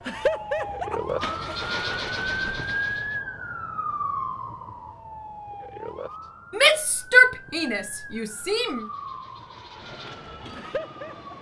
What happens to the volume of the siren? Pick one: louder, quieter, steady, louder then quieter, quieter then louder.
quieter.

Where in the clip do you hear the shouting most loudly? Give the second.
7 s.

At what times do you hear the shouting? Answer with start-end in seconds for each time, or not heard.
6.5-8.8.